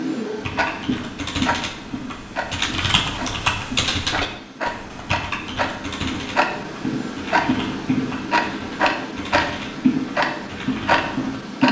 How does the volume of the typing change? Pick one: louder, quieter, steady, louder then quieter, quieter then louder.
louder then quieter.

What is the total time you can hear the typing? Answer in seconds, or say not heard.
11 s.